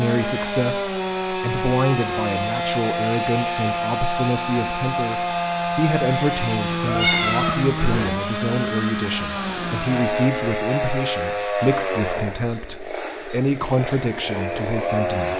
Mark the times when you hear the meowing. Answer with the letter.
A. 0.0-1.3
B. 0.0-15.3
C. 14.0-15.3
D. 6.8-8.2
D.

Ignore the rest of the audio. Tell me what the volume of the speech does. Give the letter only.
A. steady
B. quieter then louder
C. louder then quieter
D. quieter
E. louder
A.